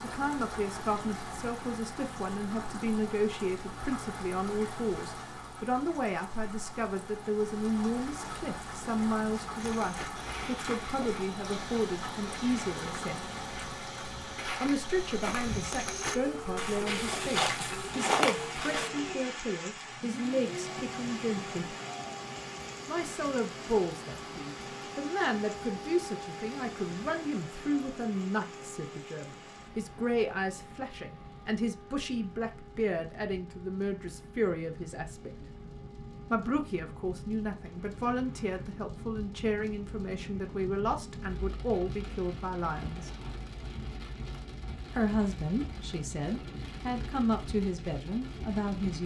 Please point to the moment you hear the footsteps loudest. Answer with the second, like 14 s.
18 s.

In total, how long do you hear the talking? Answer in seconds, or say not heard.
44 s.